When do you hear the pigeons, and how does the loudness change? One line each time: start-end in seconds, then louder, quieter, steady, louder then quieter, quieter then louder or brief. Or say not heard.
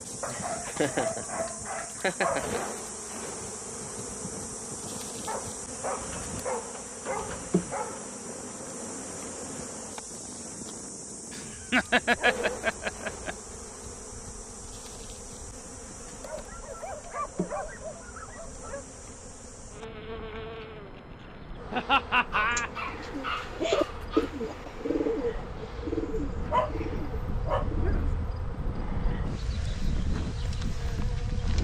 22.5-28.1 quieter.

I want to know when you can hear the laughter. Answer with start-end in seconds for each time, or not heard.
0.2-2.6, 11.3-13.3, 21.7-22.7.